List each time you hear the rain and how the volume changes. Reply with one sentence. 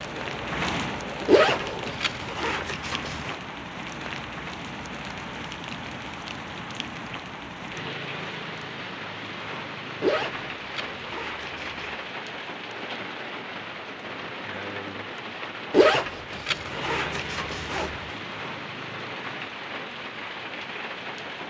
You can hear the rain from 0.0 to 21.4 s, at a steady volume.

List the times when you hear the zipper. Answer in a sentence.
You can hear the zipper from 1.2 to 3.4 s, from 10.0 to 12.1 s and from 15.7 to 18.1 s.